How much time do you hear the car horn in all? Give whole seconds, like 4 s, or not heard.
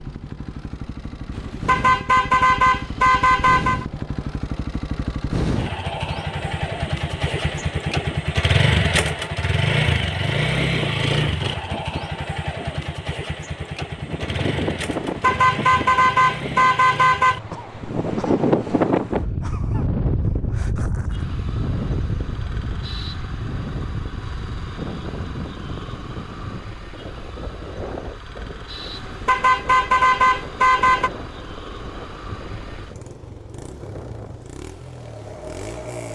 7 s.